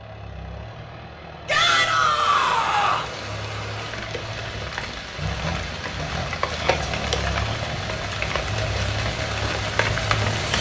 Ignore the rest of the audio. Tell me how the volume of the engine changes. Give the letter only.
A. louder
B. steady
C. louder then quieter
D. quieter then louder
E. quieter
A.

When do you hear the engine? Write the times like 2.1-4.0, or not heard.
0.0-10.5.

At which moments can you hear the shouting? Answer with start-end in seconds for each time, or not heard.
1.4-3.1, 6.5-6.9.